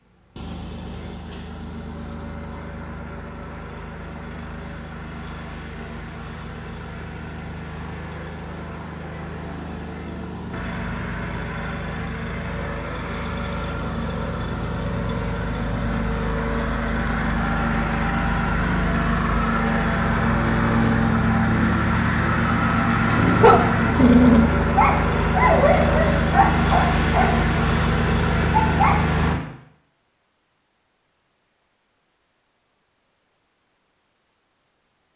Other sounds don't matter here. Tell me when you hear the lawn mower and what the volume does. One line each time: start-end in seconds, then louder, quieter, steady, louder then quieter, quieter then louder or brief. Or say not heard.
0.0-29.4 louder.